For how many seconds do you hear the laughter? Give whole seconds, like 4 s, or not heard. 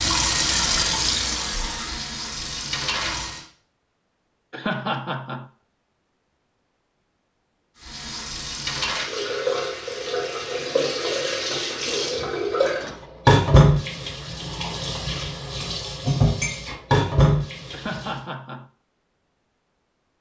2 s.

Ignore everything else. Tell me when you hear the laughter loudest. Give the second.
5 s.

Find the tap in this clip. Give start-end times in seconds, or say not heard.
0.0-3.5, 7.8-18.2.